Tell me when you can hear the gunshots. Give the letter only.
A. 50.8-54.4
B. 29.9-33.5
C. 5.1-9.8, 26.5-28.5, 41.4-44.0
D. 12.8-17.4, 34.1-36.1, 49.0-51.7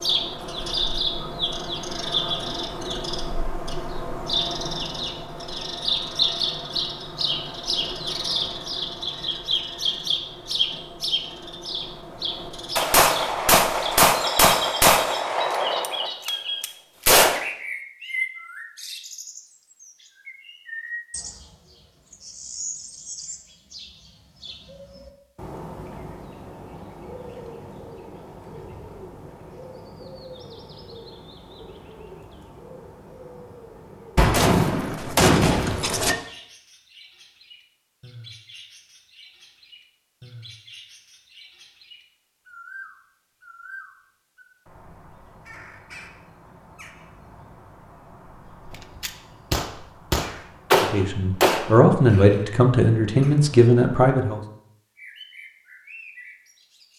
D.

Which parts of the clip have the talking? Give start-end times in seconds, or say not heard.
50.8-54.4.